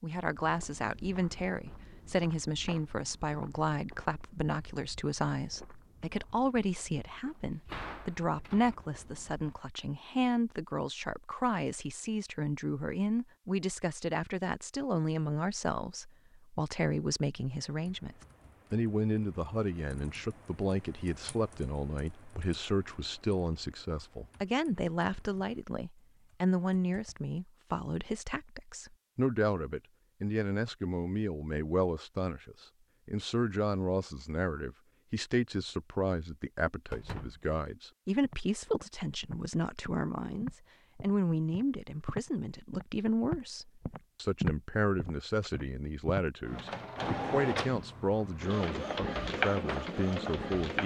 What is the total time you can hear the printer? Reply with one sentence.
The printer can be heard for 4 seconds in total.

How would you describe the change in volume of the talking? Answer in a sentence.
The volume of the talking stays about the same.